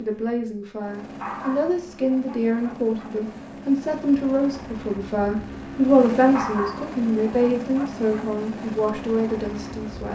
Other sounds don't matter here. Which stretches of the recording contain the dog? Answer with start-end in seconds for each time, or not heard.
1.2-3.1, 6.3-8.2.